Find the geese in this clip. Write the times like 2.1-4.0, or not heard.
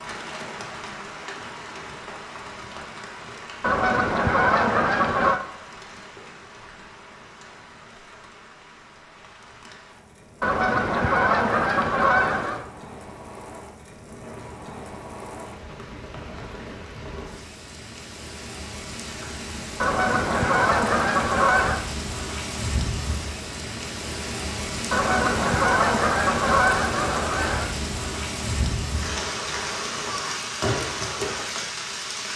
3.6-5.4, 10.4-12.7, 19.8-21.9, 24.9-27.8.